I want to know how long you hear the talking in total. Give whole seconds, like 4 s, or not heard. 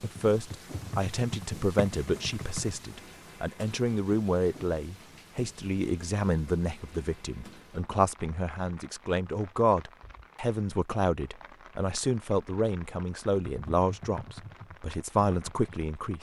16 s.